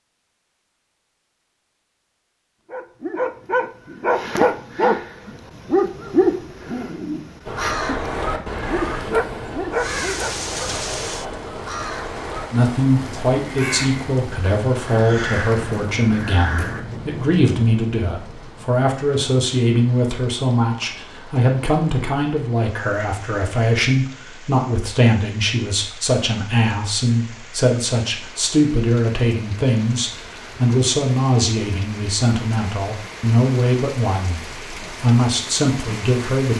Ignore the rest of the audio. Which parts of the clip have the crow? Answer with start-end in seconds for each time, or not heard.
7.5-16.9.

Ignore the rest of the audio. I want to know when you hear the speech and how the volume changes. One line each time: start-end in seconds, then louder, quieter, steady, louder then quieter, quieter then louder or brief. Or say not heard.
12.5-36.5 steady.